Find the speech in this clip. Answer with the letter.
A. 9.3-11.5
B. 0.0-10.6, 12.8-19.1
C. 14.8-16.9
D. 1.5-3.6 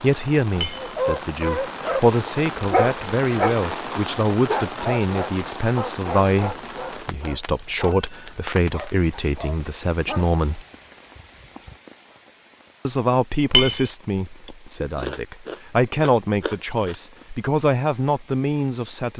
B.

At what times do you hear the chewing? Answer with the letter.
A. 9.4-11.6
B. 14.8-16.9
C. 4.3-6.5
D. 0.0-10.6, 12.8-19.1
B.